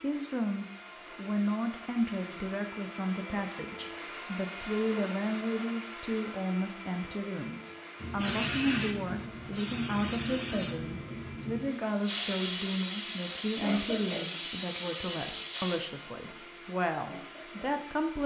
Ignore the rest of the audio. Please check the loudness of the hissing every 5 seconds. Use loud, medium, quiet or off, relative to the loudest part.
off, loud, loud, medium.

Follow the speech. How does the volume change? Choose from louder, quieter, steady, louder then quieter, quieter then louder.
steady.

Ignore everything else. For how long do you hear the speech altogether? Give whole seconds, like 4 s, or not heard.
18 s.